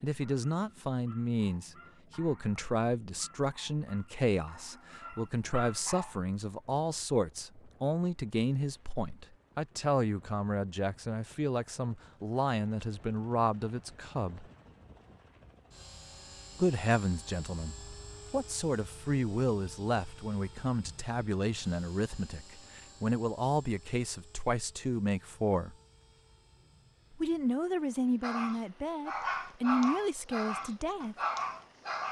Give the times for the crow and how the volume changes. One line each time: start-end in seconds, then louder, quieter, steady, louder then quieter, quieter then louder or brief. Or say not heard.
not heard.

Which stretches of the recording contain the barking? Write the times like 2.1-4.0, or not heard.
0.1-6.2, 28.2-32.0.